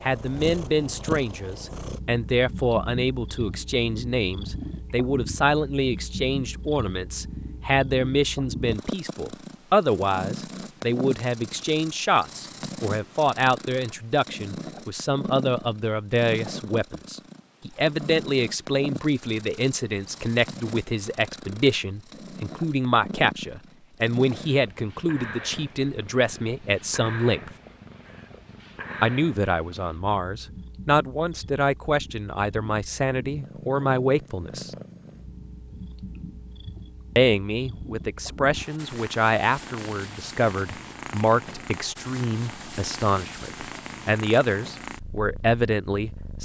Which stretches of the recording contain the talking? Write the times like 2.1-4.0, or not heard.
0.0-27.5, 29.0-34.7, 37.1-46.4.